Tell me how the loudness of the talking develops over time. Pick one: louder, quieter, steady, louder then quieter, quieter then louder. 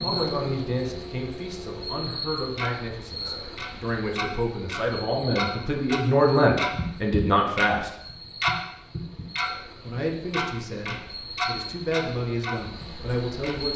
louder then quieter.